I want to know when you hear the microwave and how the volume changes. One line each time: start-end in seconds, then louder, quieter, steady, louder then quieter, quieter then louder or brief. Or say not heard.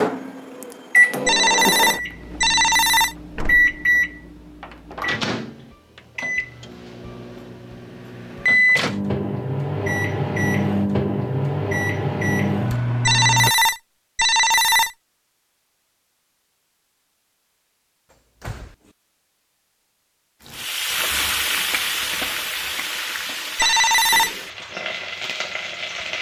0.0-13.5 quieter then louder.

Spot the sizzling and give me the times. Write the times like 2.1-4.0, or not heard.
20.4-26.1.